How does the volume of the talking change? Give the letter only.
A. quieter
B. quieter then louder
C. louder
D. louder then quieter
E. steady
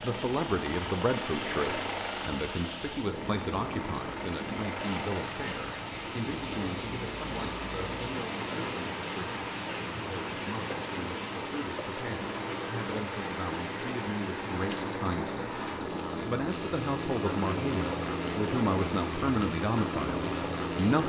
B.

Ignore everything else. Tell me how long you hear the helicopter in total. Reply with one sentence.
The helicopter can be heard for 21 seconds in total.